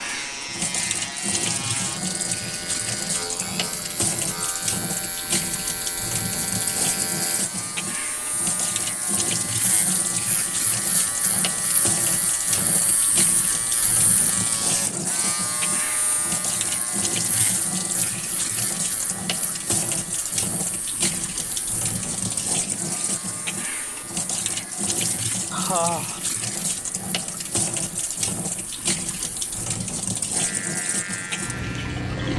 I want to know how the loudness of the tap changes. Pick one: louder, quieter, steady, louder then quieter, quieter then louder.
steady.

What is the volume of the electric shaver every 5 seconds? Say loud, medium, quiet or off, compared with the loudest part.
loud, loud, loud, loud, medium, quiet, loud.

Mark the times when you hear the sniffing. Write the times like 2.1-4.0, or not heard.
25.5-26.2.